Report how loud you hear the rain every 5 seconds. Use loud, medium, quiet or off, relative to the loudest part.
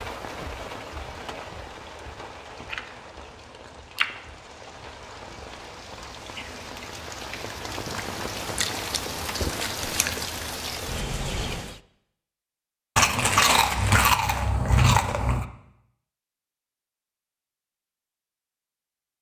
medium, loud, loud, off.